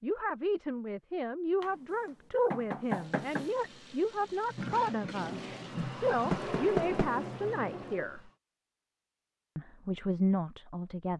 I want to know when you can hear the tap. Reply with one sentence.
The tap can be heard from 2.8 to 8.3 s.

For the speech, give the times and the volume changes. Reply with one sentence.
You can hear the speech from 0.0 to 8.3 s, at a steady volume; and briefly from 9.6 to 11.1 s.